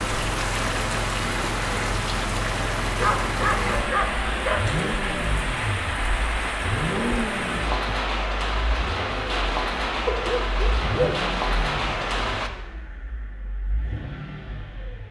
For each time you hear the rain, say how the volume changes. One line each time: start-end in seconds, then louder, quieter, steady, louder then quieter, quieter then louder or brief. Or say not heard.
0.0-12.5 steady.